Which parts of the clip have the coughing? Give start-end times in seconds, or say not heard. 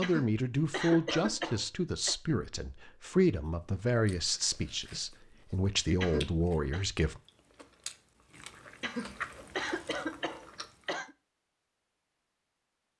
0.0-2.1, 6.0-6.8, 8.8-11.2.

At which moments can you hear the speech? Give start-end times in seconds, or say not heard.
0.0-7.2.